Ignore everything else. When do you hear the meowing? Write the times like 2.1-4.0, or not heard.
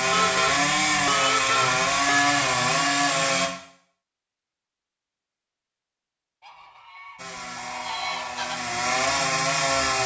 not heard.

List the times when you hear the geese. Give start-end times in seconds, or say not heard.
0.1-2.4, 6.4-8.6.